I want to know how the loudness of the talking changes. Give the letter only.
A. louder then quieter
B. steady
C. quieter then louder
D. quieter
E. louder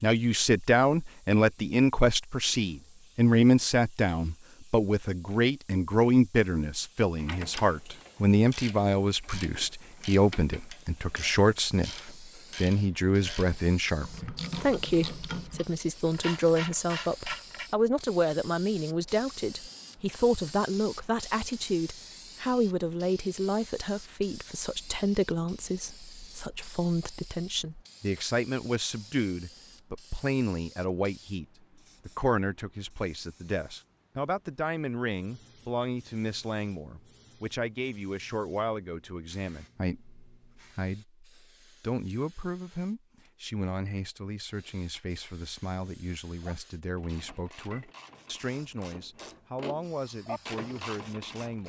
D.